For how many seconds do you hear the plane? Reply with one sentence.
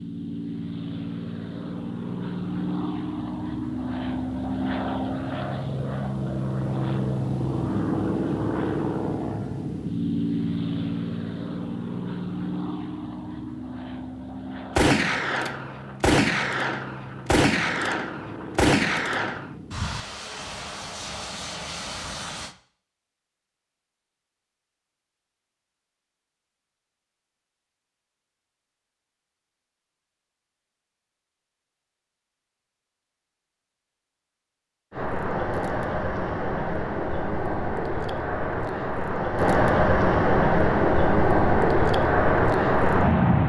You can hear the plane for 31 seconds altogether.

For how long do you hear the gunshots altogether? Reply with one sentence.
The gunshots can be heard for 5 seconds in total.